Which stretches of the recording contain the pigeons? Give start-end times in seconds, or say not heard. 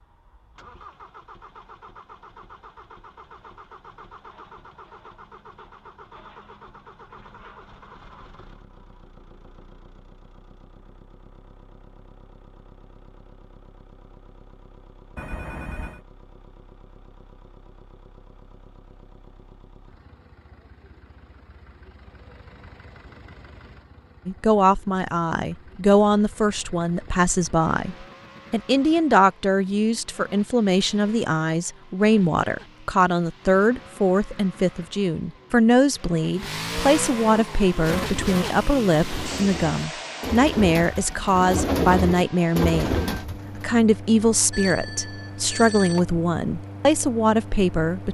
37.4-43.6.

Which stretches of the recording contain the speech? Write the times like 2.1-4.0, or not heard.
24.2-48.0.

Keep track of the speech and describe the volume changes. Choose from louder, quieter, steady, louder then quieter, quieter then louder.
steady.